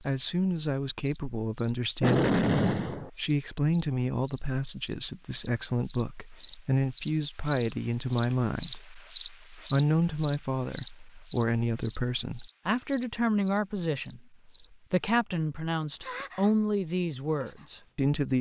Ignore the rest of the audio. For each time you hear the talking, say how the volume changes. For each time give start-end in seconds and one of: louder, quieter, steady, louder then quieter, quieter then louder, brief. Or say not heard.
0.0-18.3 steady.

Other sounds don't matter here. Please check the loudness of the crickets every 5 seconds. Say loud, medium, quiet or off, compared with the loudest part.
quiet, loud, medium, quiet.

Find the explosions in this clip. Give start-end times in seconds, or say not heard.
2.0-3.1.